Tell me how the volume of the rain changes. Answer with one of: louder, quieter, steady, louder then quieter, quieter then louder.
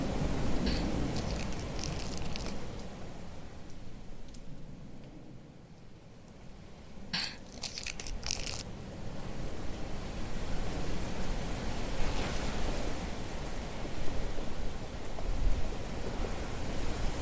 quieter then louder.